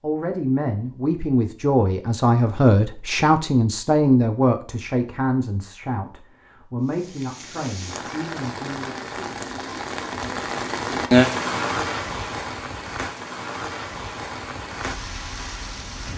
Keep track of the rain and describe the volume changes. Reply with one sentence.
The loudness of the rain goes up, then down.